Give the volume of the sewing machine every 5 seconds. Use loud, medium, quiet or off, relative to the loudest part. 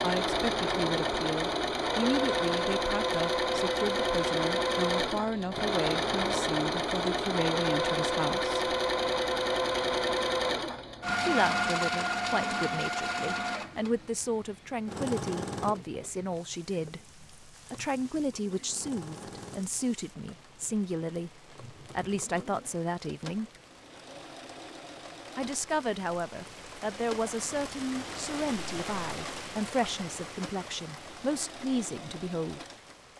loud, loud, loud, quiet, quiet, quiet, quiet.